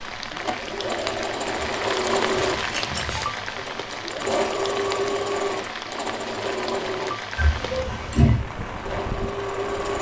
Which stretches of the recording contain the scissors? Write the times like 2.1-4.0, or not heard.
2.3-3.3, 7.3-8.4.